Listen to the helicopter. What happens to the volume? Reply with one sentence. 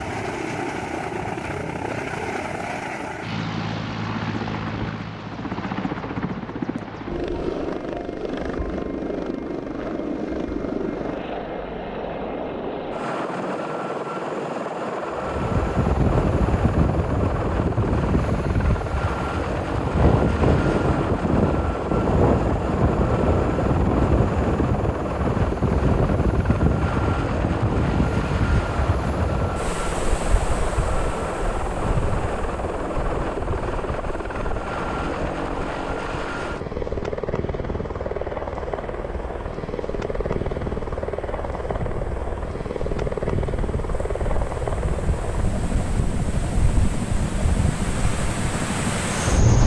The volume of the helicopter stays about the same.